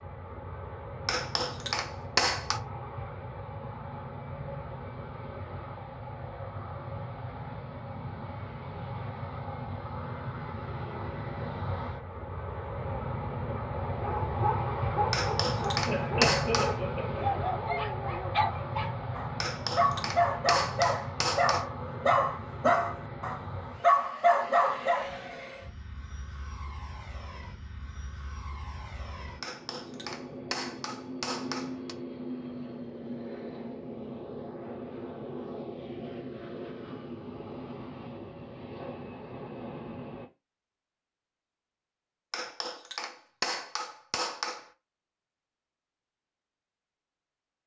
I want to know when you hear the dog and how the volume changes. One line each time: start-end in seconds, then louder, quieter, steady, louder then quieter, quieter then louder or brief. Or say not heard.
13.9-25.1 louder.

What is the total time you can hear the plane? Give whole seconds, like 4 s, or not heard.
40 s.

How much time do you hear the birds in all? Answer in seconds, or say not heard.
not heard.